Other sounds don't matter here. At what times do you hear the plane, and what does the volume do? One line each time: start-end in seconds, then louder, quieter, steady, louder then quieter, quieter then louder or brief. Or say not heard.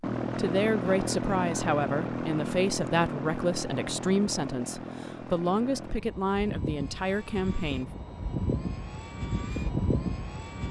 0.0-10.6 quieter then louder.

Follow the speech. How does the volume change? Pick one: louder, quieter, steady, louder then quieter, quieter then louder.
steady.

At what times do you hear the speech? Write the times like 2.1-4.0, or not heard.
0.3-7.9.